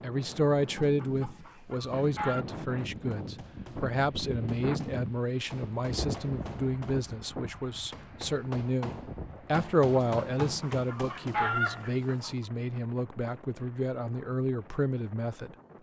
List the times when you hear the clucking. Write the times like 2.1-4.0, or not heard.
0.6-2.5, 9.8-12.3.